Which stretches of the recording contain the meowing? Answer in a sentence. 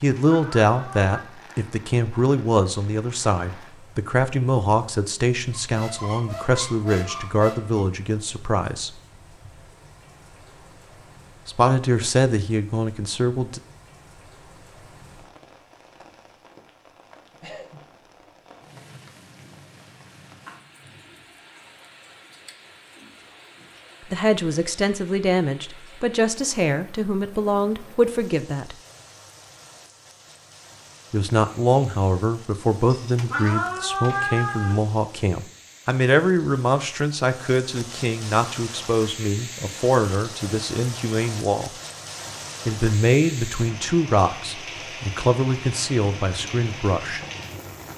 You can hear the meowing from 0.1 to 1.2 s and from 33.1 to 34.8 s.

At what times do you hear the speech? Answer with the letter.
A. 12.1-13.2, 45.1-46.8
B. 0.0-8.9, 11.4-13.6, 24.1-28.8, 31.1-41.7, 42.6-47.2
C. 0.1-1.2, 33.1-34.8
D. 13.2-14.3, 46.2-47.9
B.